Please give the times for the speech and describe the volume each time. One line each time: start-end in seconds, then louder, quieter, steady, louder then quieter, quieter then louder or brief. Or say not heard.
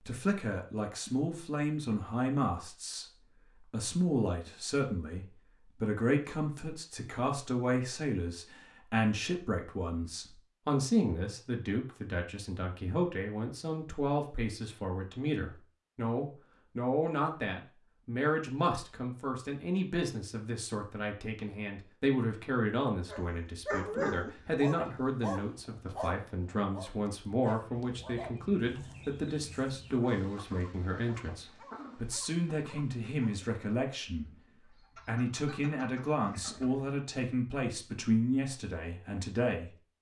0.0-39.9 steady.